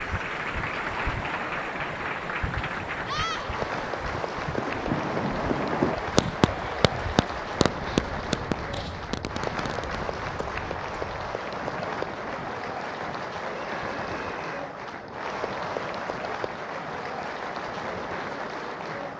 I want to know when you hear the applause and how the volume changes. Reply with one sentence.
You can hear the applause from 0.0 to 19.1 s, at a steady volume.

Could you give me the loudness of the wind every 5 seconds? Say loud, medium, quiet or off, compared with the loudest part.
loud, loud, medium, medium.